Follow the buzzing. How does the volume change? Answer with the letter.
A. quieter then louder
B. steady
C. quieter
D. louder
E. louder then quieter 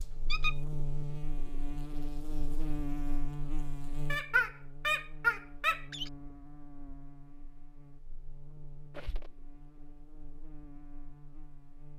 C.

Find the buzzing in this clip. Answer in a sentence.
You can hear the buzzing from 0.0 to 11.9 s.